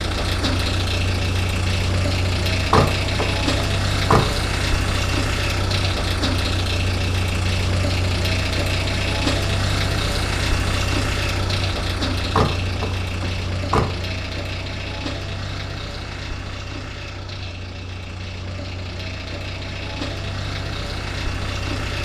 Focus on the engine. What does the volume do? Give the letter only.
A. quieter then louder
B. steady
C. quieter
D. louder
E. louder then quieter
C.